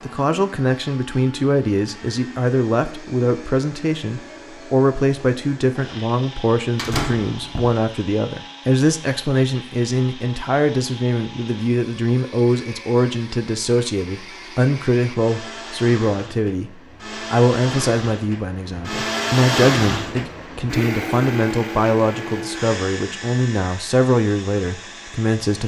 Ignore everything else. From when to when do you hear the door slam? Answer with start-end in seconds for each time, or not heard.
6.8-7.8.